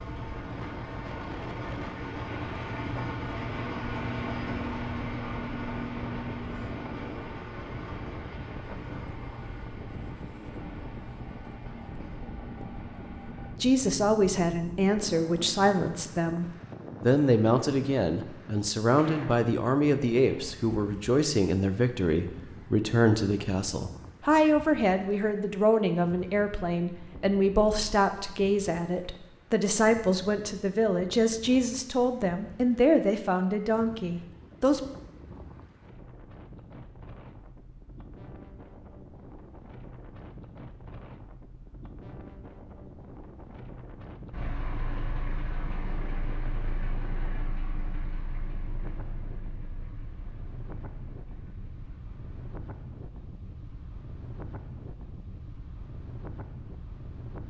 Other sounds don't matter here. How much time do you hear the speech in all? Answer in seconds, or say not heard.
21 s.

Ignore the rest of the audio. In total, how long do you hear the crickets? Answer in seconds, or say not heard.
not heard.